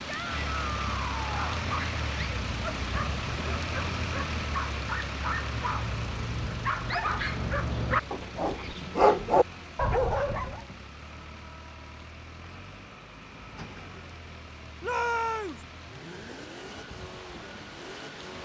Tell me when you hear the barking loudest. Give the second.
9 s.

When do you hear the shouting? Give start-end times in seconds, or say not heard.
0.1-1.6, 8.4-8.8, 14.8-15.6.